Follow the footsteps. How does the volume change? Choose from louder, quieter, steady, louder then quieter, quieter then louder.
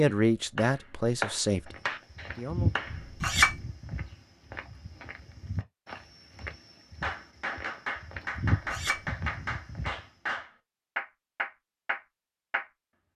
quieter then louder.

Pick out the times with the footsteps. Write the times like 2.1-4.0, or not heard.
1.6-10.1.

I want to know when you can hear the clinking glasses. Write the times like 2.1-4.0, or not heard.
2.9-3.6, 8.5-9.1.